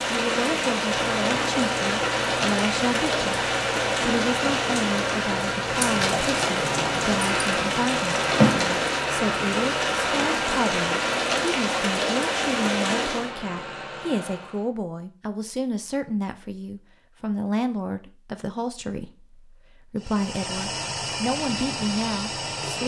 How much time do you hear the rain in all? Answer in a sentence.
You can hear the rain for 13 seconds altogether.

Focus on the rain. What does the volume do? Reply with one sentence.
The volume of the rain stays about the same.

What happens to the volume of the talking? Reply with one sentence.
The volume of the talking stays about the same.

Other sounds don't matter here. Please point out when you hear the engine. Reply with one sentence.
The engine can be heard from 0.0 to 14.7 s and from 19.9 to 22.8 s.